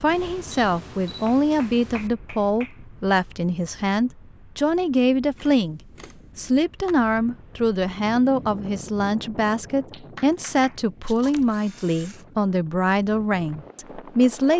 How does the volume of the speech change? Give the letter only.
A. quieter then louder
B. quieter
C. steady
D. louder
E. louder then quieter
C.